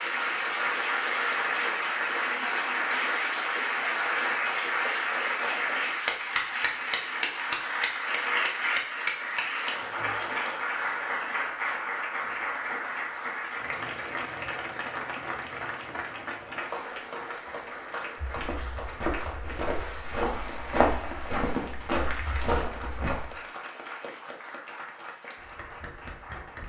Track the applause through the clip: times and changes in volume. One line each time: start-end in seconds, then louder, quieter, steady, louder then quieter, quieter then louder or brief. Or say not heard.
0.0-26.6 quieter.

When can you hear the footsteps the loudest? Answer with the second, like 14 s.
21 s.